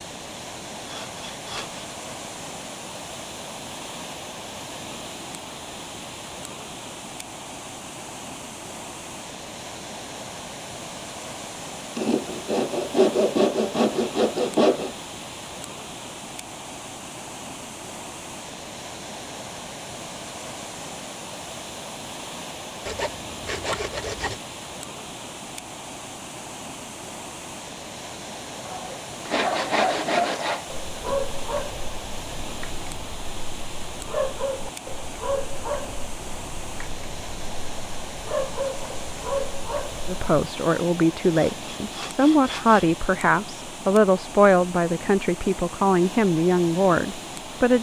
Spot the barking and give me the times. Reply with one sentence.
The barking can be heard from 28.6 to 40.2 s.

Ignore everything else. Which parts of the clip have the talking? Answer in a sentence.
The talking can be heard from 40.0 to 47.7 s.